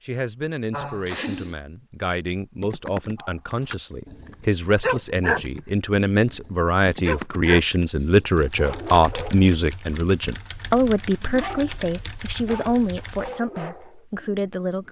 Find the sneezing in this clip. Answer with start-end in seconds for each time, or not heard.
0.7-1.6.